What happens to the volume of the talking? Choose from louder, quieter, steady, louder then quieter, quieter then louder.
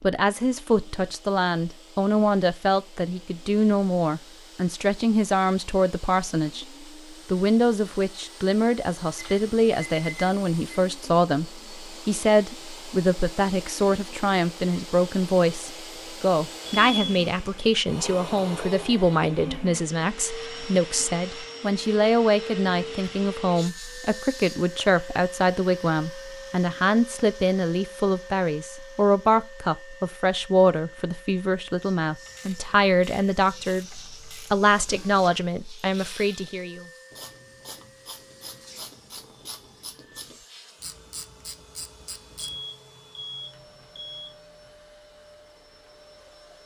steady.